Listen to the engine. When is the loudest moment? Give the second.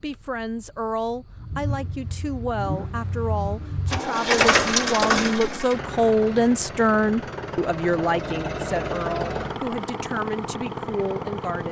5 s.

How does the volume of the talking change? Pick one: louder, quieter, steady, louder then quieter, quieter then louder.
louder then quieter.